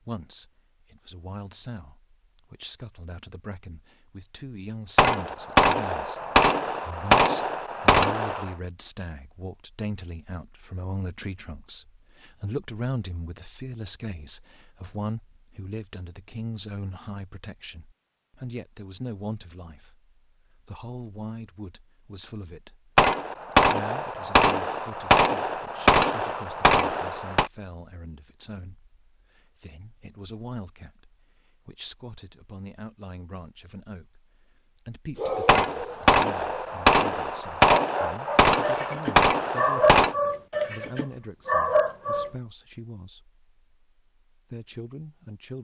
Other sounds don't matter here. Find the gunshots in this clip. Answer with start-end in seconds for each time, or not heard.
5.0-8.5, 22.9-27.5, 35.5-40.1.